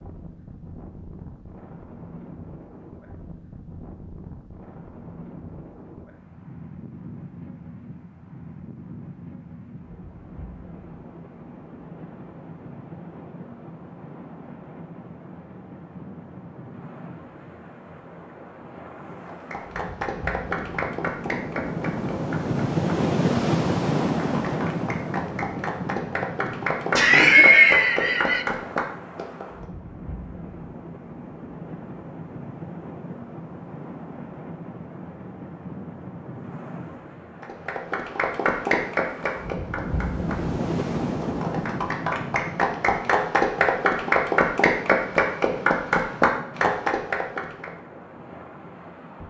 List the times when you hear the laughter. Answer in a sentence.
The laughter can be heard from 26.9 to 28.4 s.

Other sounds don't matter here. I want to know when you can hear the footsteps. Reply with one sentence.
The footsteps can't be heard in this clip.